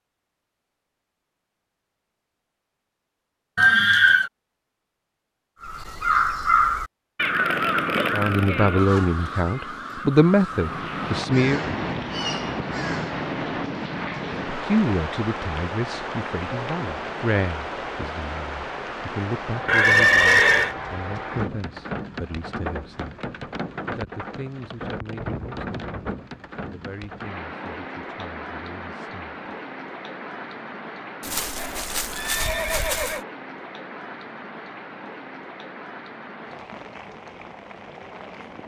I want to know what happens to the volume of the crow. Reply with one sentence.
The volume of the crow goes down.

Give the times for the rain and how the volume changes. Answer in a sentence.
You can hear the rain from 10.6 to 38.6 s, getting quieter.